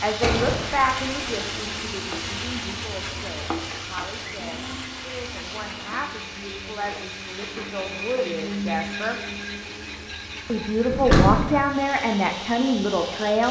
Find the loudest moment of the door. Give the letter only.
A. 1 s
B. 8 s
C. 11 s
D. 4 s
C.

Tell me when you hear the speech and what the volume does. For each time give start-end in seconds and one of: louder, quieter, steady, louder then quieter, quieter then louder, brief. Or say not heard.
0.0-9.2 quieter then louder
10.4-13.4 brief.